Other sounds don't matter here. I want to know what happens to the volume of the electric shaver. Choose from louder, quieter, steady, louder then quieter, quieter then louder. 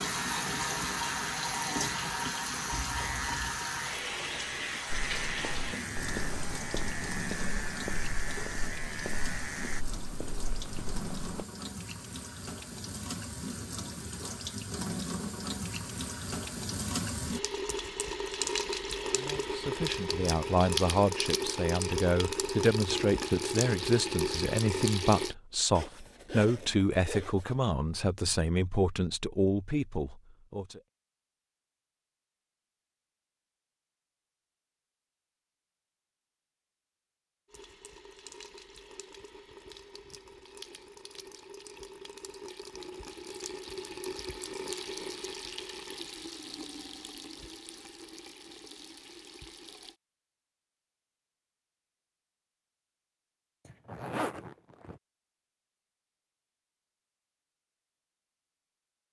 steady.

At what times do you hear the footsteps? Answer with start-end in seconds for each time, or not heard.
4.9-11.4.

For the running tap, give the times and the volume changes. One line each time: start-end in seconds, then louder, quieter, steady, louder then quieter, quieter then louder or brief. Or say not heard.
0.0-25.4 quieter then louder
37.5-50.0 louder then quieter.